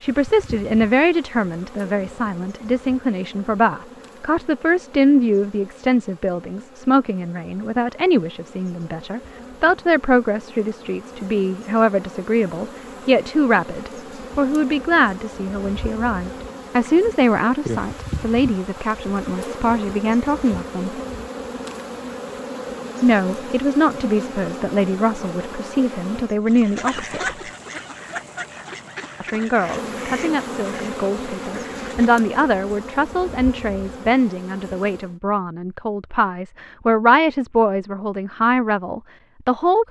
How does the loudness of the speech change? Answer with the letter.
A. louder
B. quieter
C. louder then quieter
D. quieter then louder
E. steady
E.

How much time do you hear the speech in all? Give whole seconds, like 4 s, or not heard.
36 s.